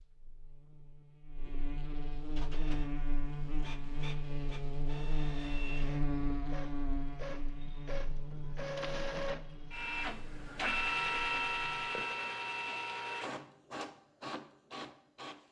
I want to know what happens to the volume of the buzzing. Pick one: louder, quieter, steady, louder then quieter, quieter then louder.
louder then quieter.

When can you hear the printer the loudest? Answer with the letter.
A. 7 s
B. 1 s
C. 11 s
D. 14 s
C.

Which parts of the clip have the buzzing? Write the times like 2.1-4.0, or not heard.
0.0-11.9.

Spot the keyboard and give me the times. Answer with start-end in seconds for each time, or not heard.
not heard.